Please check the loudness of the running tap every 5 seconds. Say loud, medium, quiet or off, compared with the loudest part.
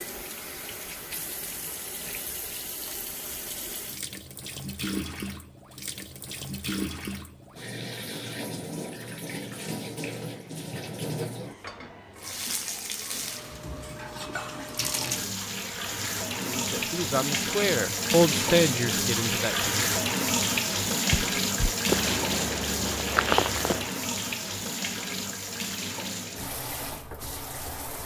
medium, medium, medium, loud, loud, medium.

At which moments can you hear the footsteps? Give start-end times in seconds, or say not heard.
21.1-23.9.